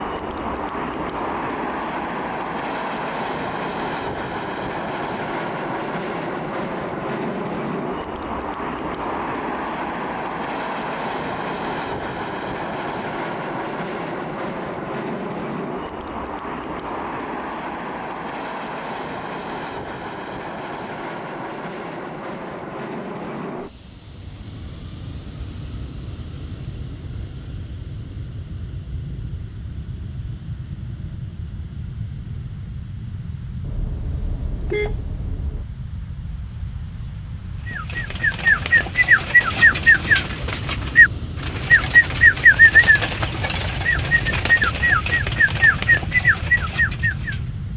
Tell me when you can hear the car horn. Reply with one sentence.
You can hear the car horn from 33.6 to 35.6 s.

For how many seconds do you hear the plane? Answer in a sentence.
You can hear the plane for 48 seconds altogether.